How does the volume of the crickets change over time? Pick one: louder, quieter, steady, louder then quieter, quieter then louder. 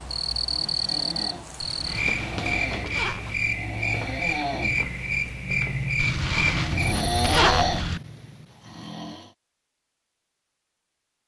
steady.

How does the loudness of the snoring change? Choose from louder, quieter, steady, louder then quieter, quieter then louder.
louder.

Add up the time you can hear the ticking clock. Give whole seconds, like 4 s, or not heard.
not heard.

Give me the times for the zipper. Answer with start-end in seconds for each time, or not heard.
1.6-3.2, 6.0-8.0.